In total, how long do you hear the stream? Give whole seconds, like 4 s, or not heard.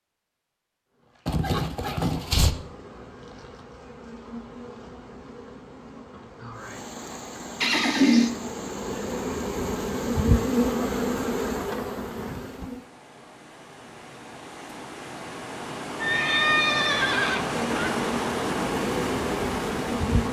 14 s.